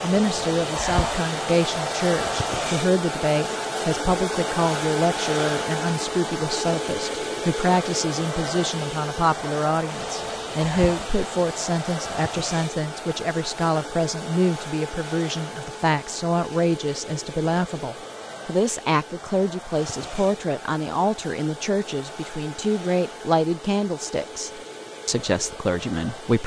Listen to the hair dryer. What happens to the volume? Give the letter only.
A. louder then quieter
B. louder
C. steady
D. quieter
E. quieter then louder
D.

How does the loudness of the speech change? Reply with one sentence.
The volume of the speech stays about the same.